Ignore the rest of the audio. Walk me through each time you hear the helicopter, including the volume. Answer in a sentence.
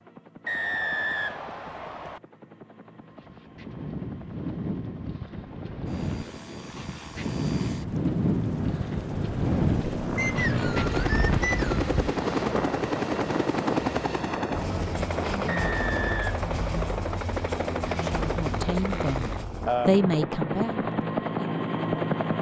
The helicopter can be heard from 0.0 to 22.3 s, getting louder.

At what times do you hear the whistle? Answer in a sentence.
You can hear the whistle from 0.5 to 2.2 s, from 10.2 to 11.8 s and from 15.5 to 17.0 s.